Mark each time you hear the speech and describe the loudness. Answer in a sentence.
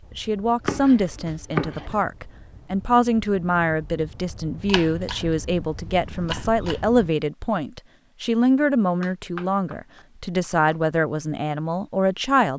The speech can be heard from 0.1 to 12.5 s, at a steady volume.